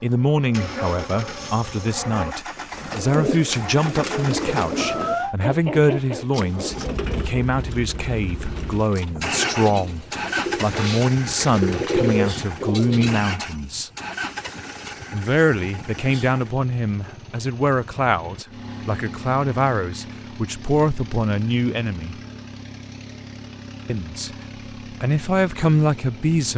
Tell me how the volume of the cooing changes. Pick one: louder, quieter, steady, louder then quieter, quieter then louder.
quieter then louder.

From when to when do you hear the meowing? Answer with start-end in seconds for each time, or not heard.
4.8-5.3.